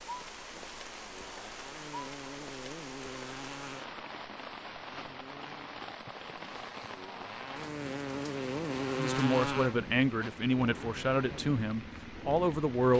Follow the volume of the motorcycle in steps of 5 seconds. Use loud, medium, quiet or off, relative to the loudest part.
medium, loud, medium.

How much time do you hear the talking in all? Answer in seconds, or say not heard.
4 s.